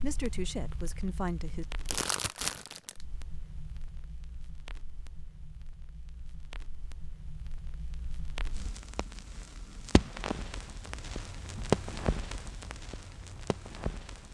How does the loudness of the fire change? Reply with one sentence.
The loudness of the fire goes down, then up.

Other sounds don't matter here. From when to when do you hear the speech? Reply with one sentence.
The speech can be heard from 0.0 to 1.6 s.